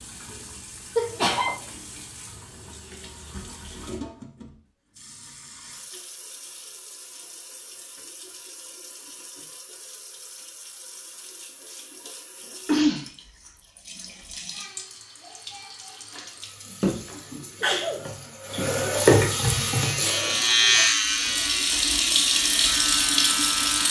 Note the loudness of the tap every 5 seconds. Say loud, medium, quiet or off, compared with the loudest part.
quiet, quiet, quiet, loud, loud.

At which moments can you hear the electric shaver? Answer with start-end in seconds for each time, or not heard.
19.4-23.8.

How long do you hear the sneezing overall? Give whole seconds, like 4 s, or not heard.
2 s.